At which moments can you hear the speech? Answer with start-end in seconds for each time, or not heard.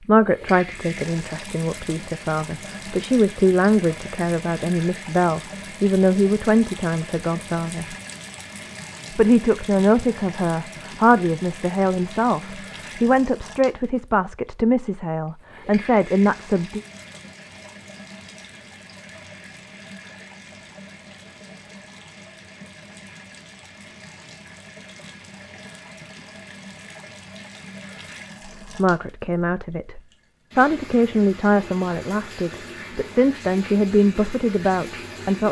0.1-8.0, 9.1-16.8, 28.4-35.4.